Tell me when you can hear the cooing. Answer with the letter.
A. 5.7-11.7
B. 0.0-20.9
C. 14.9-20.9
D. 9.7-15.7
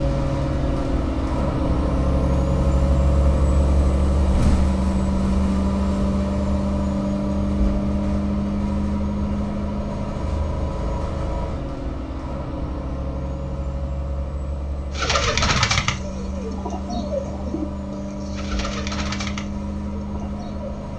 C.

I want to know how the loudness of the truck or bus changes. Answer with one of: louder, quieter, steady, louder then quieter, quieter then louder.
quieter.